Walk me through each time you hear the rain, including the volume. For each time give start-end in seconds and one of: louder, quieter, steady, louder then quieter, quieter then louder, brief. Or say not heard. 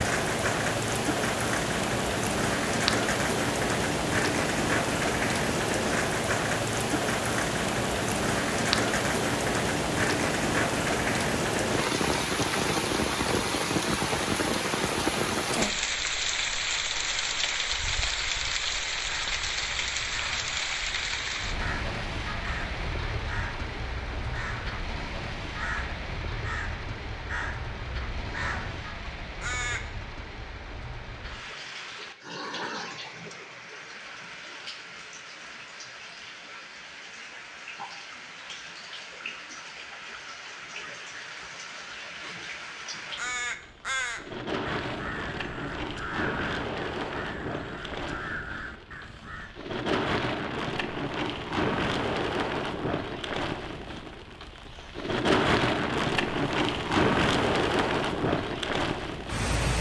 0.0-59.7 quieter then louder.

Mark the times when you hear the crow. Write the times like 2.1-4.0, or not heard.
19.1-29.9, 43.1-49.5.